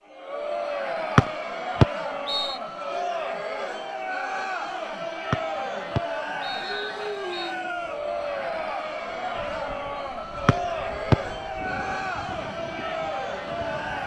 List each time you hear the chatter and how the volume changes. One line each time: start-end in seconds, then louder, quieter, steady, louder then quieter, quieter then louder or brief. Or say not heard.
0.0-14.0 steady.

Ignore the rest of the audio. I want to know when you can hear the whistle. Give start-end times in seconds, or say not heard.
1.1-2.6, 5.3-7.5, 10.4-11.2.